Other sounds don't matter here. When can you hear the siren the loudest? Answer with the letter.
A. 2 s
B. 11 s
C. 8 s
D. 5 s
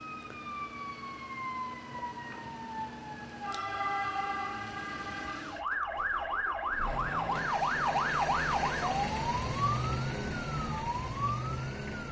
C.